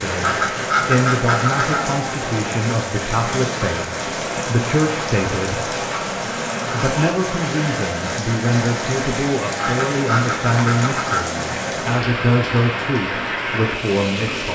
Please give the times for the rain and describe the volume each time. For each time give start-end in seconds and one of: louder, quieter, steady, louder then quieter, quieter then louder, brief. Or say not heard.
0.0-14.5 steady.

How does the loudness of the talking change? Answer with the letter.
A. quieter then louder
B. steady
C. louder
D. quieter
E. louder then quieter
B.